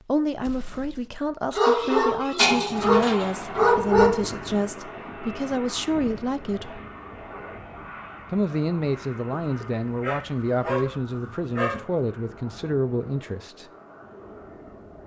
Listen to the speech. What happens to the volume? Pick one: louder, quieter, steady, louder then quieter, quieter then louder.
steady.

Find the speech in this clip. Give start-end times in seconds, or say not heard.
0.1-6.8, 8.3-13.7.